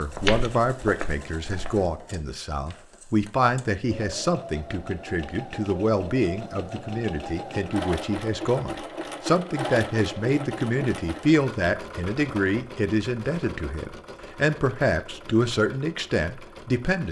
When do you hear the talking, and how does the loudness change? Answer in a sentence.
You can hear the talking from 0.0 to 17.0 s, at a steady volume.